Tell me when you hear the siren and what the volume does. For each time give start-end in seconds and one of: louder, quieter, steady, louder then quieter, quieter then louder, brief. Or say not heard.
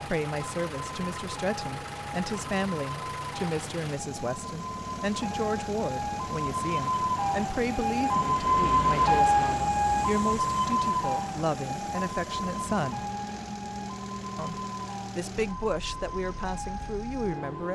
0.0-17.7 louder then quieter.